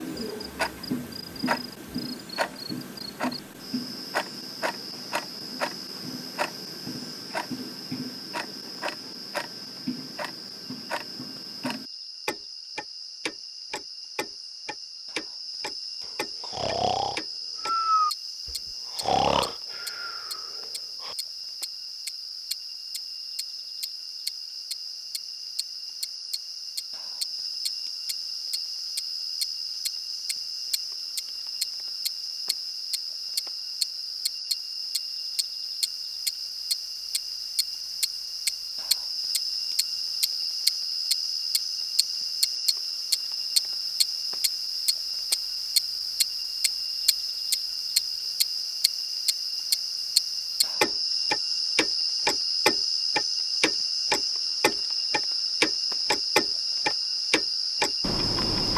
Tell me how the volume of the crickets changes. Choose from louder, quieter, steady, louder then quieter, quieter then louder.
louder.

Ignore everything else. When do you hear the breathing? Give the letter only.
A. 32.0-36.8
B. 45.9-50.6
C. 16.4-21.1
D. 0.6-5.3
C.